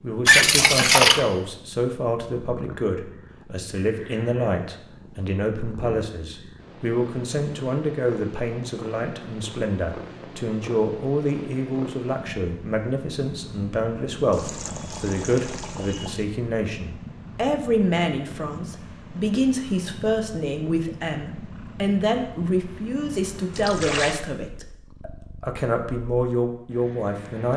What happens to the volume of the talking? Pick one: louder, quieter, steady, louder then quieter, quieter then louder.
steady.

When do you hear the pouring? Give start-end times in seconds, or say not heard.
0.2-1.2, 14.3-16.2, 23.5-24.2.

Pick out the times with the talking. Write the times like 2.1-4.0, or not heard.
0.0-27.5.